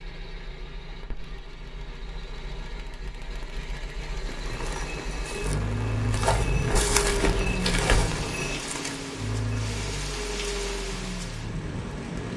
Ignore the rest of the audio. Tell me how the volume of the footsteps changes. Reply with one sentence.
The loudness of the footsteps goes up, then down.